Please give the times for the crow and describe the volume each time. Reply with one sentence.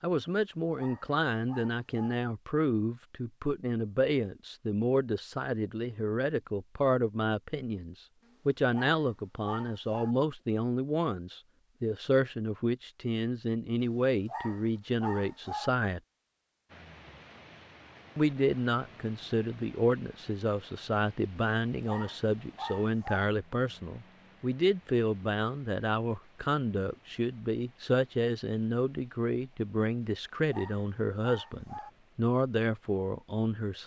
You can't hear the crow here.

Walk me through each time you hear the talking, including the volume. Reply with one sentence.
The talking can be heard from 0.0 to 16.0 s, at a steady volume; and from 18.1 to 33.8 s, at a steady volume.